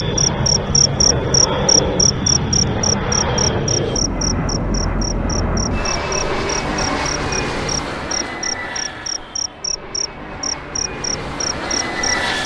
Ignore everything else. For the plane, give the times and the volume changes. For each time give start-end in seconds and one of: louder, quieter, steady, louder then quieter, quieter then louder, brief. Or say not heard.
0.0-12.4 quieter.